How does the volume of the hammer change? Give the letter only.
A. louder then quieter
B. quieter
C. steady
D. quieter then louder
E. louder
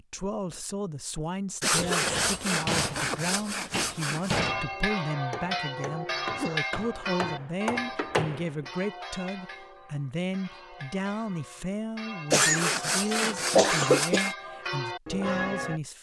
D.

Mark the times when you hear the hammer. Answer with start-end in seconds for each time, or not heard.
2.0-8.7.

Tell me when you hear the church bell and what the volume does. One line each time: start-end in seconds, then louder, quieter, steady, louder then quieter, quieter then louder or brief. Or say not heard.
4.2-15.8 quieter then louder.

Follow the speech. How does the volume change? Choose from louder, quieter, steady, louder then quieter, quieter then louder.
steady.